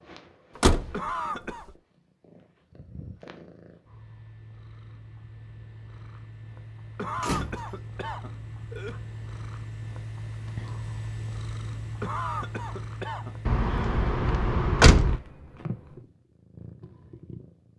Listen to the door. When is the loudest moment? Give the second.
15 s.